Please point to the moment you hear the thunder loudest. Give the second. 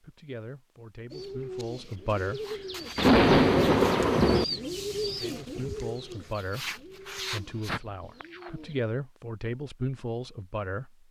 3 s.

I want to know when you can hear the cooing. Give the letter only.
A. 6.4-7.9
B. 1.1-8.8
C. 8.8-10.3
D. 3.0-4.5
B.